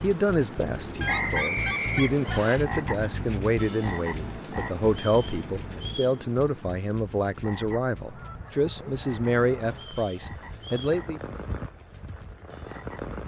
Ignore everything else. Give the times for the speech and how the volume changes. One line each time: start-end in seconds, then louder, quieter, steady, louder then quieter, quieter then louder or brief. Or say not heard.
0.0-11.2 steady.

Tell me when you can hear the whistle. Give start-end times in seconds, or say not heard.
1.1-2.6, 4.9-6.2, 9.7-11.0.